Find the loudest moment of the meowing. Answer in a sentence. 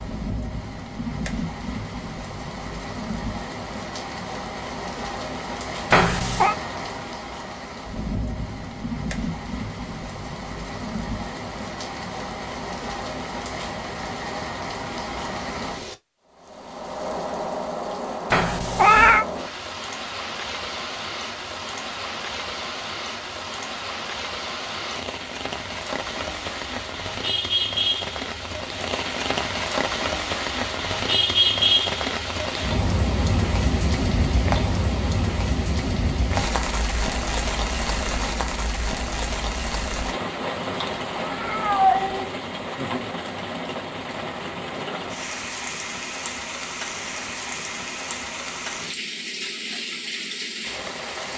The loudest moment of the meowing is at 19 seconds.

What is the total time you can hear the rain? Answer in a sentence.
The rain can be heard for 51 seconds in total.